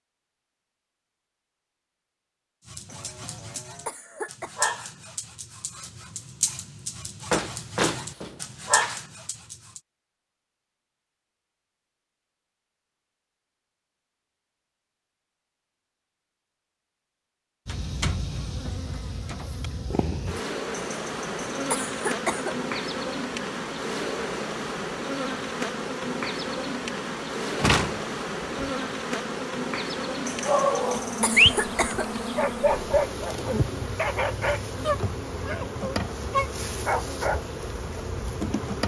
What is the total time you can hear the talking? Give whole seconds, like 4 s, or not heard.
not heard.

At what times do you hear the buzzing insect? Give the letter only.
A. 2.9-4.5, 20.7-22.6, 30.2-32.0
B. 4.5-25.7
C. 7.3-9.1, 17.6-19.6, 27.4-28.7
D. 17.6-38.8
D.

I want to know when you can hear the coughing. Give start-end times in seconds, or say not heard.
2.9-4.5, 20.7-22.6, 30.2-32.0.